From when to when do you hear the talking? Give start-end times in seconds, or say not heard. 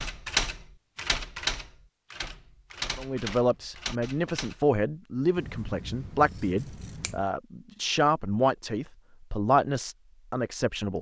3.0-10.9.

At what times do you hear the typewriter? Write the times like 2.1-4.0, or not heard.
0.0-4.6.